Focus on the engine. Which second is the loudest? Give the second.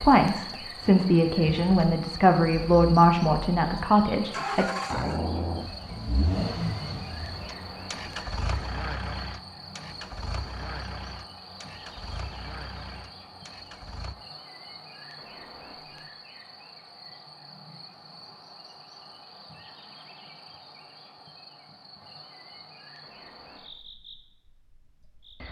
5 s.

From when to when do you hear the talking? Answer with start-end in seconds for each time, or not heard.
0.0-4.7.